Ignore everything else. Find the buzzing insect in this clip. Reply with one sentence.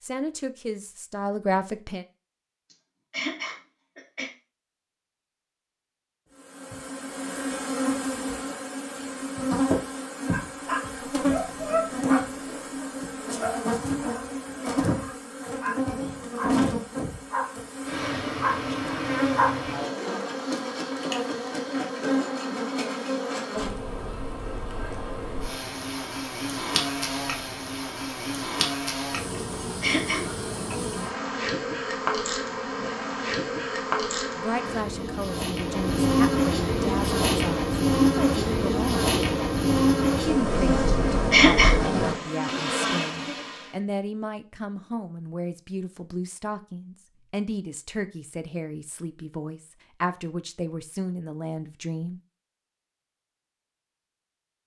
The buzzing insect can be heard from 6.4 to 43.6 s.